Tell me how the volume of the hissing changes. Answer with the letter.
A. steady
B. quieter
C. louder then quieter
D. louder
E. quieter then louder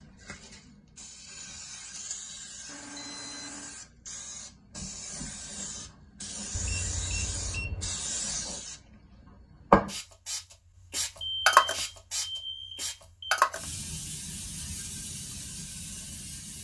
C.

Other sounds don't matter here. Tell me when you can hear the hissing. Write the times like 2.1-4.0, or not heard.
0.0-16.5.